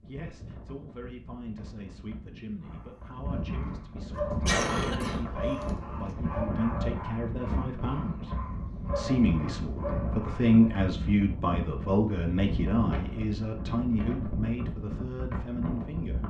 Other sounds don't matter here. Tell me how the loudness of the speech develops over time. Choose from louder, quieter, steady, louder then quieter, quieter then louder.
louder then quieter.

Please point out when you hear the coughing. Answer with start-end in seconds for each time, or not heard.
4.2-6.2.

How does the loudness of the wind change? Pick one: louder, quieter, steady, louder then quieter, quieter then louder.
louder.